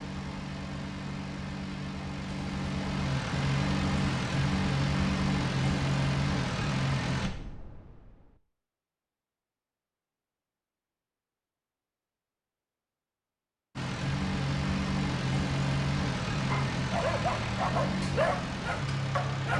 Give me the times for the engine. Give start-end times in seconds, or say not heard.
0.0-7.3, 13.8-19.5.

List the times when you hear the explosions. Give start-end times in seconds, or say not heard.
7.2-8.4.